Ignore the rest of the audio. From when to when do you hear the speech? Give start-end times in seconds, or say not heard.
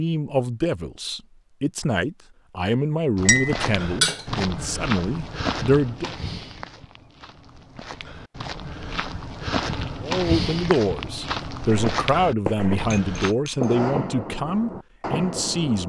0.0-6.2, 10.0-15.8.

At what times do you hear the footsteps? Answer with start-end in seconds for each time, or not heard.
3.1-13.3.